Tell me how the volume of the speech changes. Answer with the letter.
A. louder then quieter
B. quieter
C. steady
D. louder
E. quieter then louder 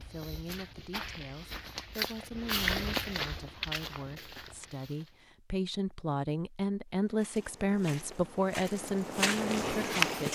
D.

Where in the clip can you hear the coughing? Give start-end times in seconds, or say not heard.
not heard.